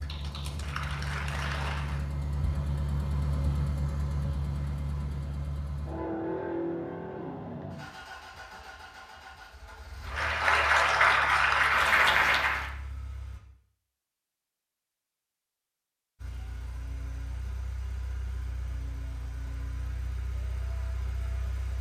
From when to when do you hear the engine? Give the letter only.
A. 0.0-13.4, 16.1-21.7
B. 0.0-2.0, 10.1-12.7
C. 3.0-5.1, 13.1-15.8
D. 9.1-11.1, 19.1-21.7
A.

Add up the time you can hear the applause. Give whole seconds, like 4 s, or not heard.
5 s.